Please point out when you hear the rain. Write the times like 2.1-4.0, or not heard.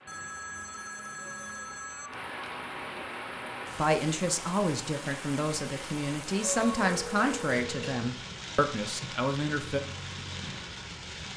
0.0-11.3.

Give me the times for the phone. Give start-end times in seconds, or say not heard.
0.1-2.1, 6.8-8.1.